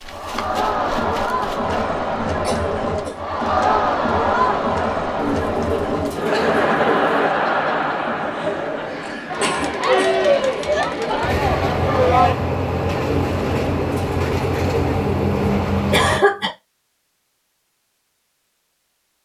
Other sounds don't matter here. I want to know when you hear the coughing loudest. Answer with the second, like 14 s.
16 s.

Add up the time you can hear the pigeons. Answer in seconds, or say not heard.
5 s.